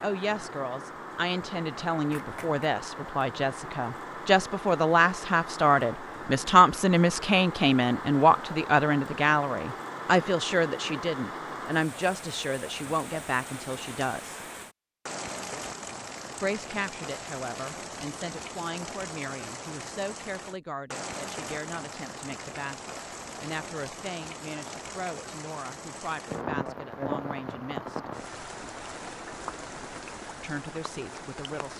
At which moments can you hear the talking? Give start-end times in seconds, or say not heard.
0.0-14.4, 16.4-28.1, 30.4-31.7.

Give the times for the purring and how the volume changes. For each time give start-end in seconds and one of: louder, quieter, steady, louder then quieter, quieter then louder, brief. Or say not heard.
not heard.